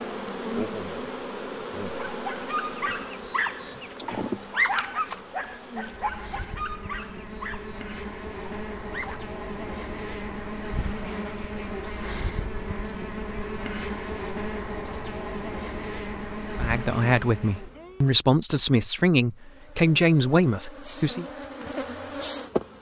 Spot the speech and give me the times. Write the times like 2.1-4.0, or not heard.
16.6-21.2.